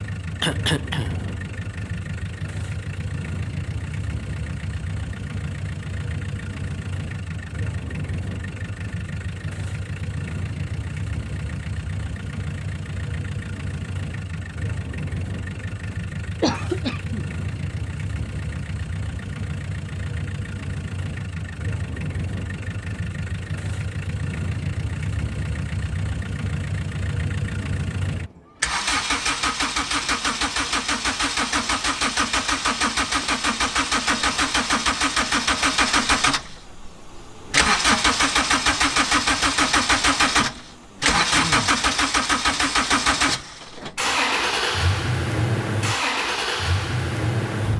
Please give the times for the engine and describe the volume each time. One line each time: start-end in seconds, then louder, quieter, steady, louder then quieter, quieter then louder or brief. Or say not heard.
0.0-47.7 louder.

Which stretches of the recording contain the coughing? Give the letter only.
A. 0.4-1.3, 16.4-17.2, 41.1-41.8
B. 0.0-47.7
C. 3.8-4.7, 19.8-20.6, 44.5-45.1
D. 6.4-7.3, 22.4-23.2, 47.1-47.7
A.